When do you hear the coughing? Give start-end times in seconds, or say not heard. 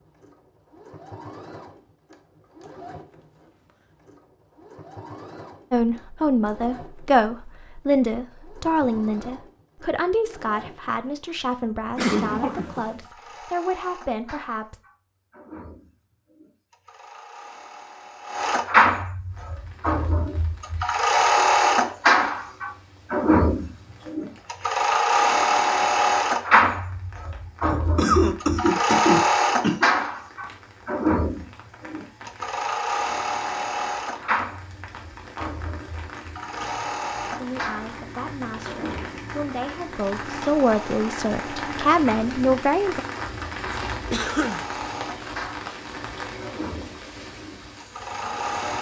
11.9-12.9, 27.6-29.9, 44.1-44.6.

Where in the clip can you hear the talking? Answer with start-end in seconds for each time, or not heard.
5.7-14.8, 37.3-43.0.